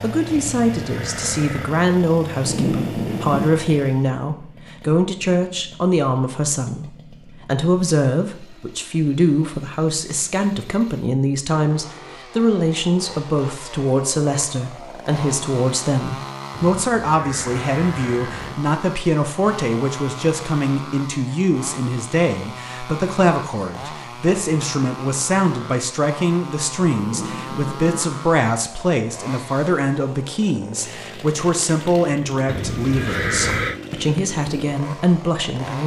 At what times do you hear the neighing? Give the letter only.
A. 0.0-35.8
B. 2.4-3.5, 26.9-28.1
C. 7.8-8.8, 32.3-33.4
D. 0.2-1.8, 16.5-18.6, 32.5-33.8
D.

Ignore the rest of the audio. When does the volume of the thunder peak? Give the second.
3 s.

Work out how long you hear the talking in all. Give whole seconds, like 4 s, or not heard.
36 s.